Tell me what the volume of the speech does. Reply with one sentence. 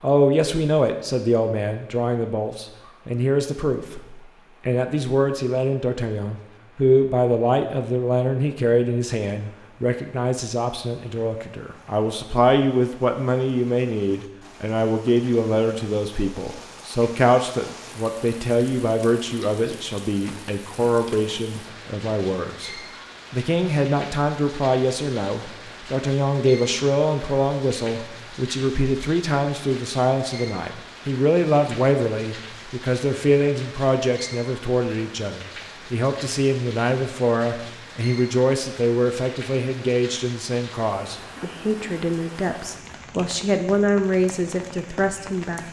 The loudness of the speech stays about the same.